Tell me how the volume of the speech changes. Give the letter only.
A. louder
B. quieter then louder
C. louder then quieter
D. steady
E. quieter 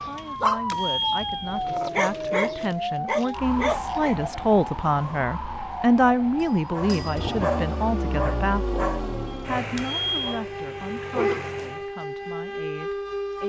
C.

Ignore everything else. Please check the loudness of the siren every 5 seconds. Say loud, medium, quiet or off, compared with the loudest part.
loud, medium, loud.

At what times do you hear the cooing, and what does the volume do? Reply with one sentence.
You can't hear the cooing here.